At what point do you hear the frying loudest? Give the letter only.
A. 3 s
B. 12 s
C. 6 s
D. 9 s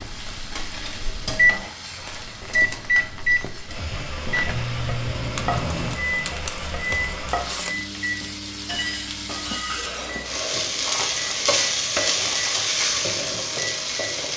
B.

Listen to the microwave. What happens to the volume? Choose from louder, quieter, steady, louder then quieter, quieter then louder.
quieter.